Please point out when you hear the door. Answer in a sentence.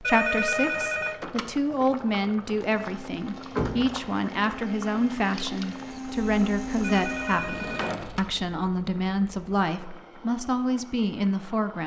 The door can be heard from 3.5 to 4.0 s and from 7.2 to 8.3 s.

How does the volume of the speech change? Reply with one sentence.
The loudness of the speech stays about the same.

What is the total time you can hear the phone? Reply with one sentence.
The phone can be heard for 3 seconds in total.